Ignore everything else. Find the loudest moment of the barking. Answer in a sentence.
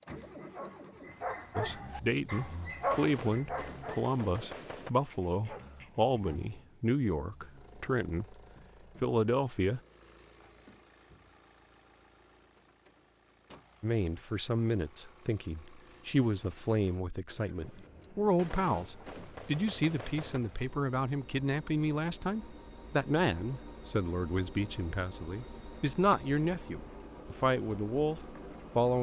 The volume of the barking peaks at 3 seconds.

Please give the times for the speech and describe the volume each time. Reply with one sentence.
You can hear the speech from 1.6 to 8.4 s, at a steady volume; briefly from 9.0 to 9.8 s; and from 13.8 to 28.9 s, at a steady volume.